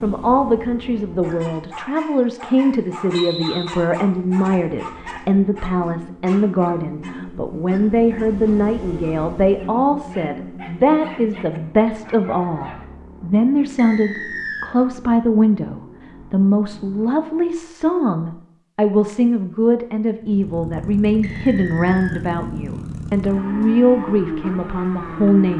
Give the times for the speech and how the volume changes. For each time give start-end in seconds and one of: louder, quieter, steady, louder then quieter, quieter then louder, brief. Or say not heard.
0.0-25.5 steady.